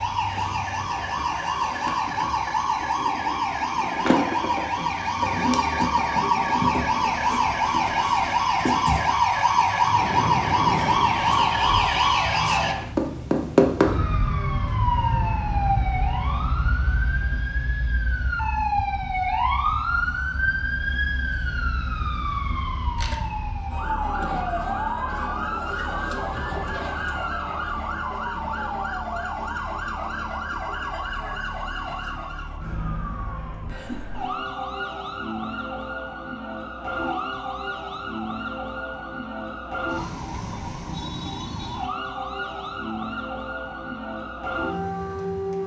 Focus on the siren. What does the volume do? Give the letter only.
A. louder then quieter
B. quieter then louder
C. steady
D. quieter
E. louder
D.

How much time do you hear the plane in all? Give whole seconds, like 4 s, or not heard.
3 s.